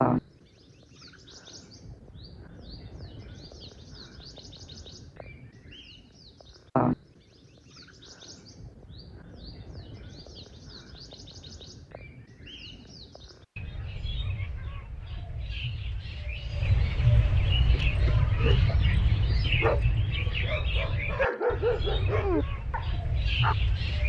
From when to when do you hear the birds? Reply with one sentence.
The birds can be heard from 0.0 to 24.0 s.